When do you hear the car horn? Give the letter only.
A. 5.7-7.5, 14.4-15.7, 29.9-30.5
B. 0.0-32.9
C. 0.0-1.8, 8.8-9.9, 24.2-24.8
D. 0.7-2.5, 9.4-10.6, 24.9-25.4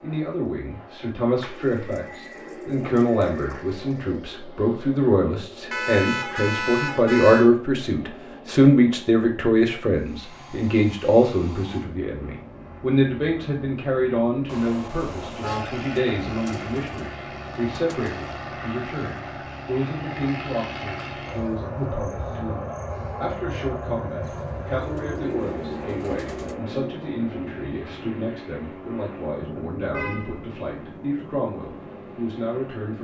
A.